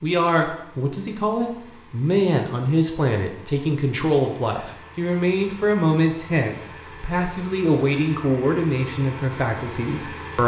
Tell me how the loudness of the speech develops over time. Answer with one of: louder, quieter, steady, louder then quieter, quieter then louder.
steady.